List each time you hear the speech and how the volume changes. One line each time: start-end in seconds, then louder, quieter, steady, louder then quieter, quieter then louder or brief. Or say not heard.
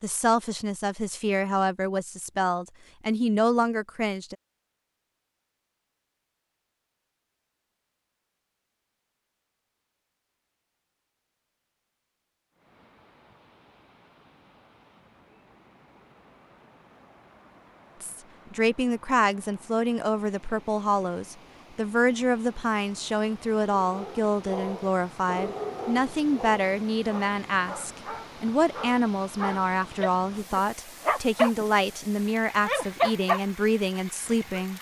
0.0-4.3 louder
18.0-34.7 steady.